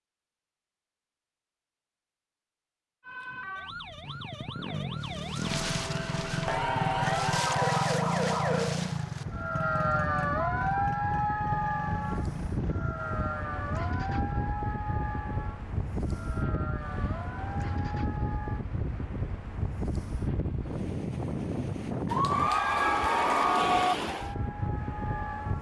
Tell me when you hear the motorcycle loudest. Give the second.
8 s.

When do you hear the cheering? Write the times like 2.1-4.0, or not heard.
6.5-8.0, 22.1-23.9.